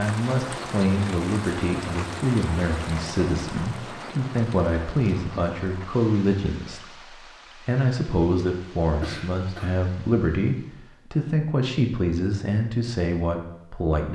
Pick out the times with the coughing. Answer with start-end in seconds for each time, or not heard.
9.0-9.8.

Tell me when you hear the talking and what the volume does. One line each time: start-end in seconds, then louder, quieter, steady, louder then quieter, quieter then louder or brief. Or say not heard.
0.0-14.0 steady.